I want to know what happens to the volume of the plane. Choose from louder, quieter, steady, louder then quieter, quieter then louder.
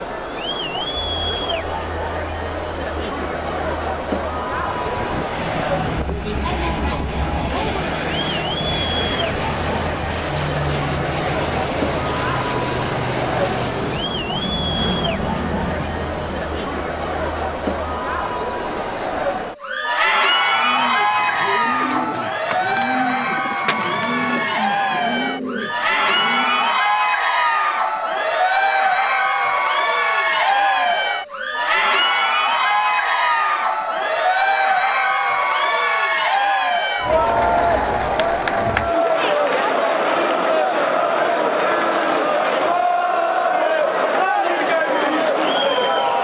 steady.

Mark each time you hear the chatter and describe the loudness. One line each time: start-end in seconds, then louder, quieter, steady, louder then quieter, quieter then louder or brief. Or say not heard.
0.0-46.1 louder.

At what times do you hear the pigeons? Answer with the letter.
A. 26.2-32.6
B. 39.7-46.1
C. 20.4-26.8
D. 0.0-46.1
C.